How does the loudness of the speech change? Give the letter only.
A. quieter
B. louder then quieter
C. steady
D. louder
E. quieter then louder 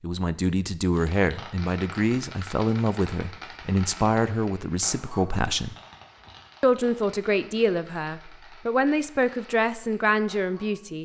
C.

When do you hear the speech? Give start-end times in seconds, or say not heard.
0.0-5.8, 6.6-10.9.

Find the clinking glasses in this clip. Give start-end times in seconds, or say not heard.
not heard.